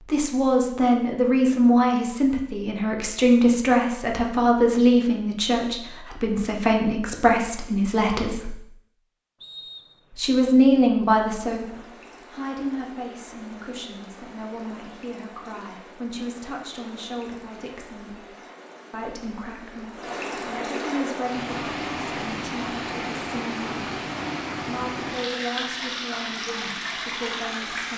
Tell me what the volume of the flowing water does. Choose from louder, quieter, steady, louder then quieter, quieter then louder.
louder.